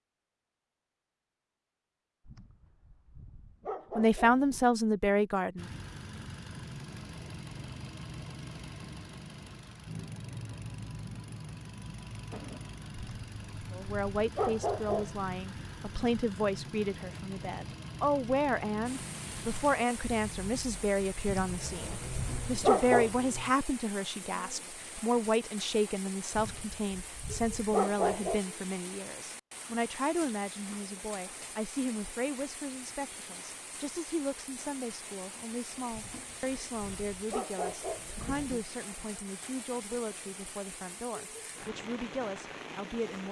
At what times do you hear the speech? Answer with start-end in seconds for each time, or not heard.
4.0-5.7, 13.7-43.2.